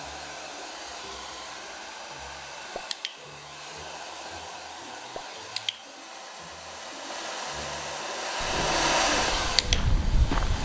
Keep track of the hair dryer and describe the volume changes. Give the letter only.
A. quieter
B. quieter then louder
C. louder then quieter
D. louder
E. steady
D.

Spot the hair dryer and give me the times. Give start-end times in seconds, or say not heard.
0.0-10.5.